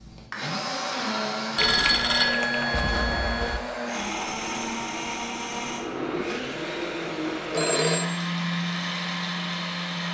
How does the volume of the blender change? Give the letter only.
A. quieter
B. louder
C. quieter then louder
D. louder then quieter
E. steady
E.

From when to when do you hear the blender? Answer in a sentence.
You can hear the blender from 0.0 to 10.1 s.